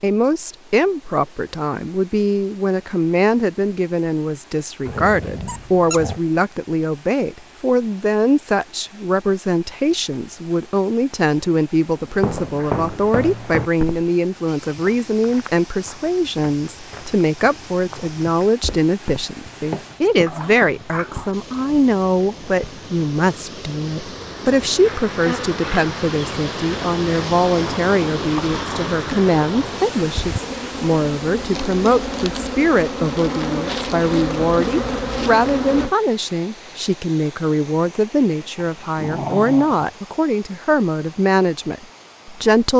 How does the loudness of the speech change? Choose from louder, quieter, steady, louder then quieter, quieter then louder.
steady.